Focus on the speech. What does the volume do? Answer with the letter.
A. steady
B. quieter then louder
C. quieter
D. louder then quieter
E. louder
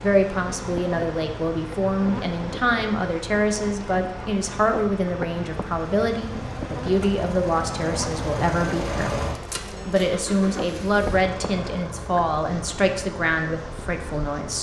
A.